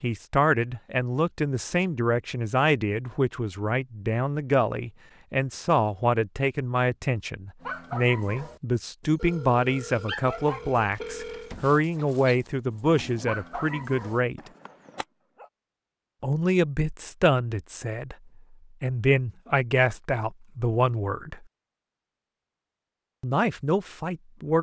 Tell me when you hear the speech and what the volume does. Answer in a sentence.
You can hear the speech from 0.0 to 14.4 s, at a steady volume; briefly from 16.2 to 18.1 s; briefly from 18.8 to 21.4 s; and briefly from 23.2 to 24.5 s.